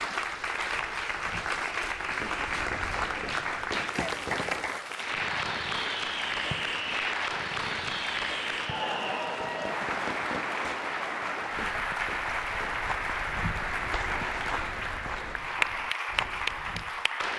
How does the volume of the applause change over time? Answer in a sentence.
The volume of the applause stays about the same.